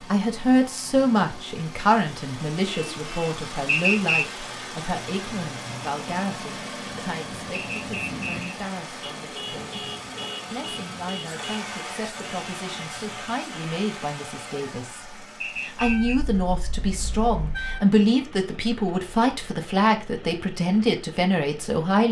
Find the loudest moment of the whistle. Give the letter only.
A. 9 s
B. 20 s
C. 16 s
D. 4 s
D.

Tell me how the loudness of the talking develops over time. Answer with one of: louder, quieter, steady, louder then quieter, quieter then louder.
quieter then louder.